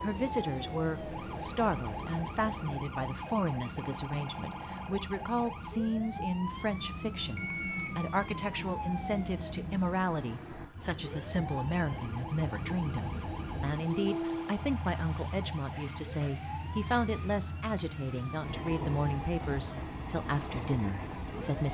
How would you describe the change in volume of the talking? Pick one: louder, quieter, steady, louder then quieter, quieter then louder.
steady.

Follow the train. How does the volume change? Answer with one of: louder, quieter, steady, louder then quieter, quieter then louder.
steady.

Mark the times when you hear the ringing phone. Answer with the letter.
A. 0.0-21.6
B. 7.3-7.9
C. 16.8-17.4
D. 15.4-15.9
B.